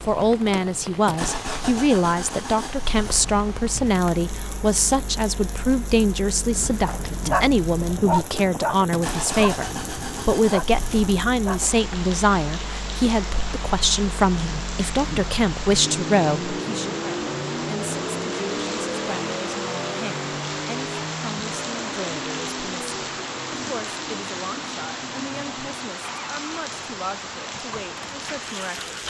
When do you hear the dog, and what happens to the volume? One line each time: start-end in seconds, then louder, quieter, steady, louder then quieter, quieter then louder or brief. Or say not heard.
6.5-11.8 quieter then louder.